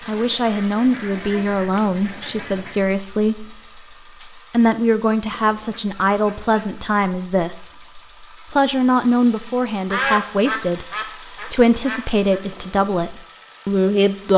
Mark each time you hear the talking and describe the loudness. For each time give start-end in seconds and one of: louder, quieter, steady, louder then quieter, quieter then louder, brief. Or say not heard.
0.1-14.3 steady.